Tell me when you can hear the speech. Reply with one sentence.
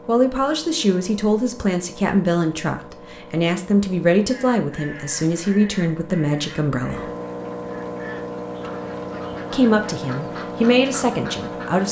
The speech can be heard from 0.1 to 7.1 s and from 9.5 to 11.8 s.